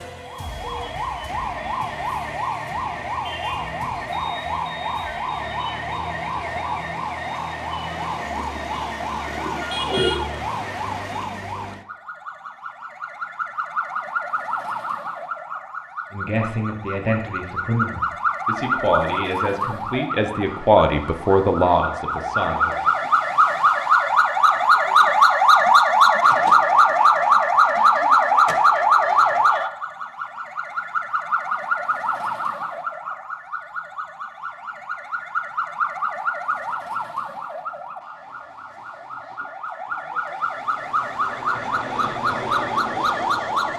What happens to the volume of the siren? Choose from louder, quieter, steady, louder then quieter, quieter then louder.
louder then quieter.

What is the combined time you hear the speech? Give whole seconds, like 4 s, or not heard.
7 s.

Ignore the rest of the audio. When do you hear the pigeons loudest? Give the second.
10 s.